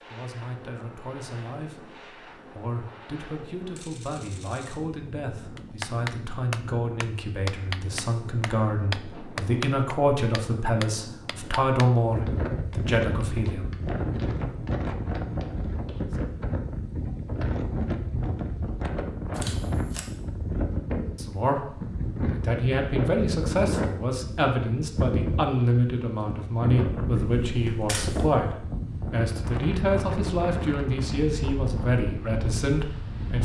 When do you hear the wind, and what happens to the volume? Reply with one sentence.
The wind can be heard from 0.0 to 33.4 s, getting louder.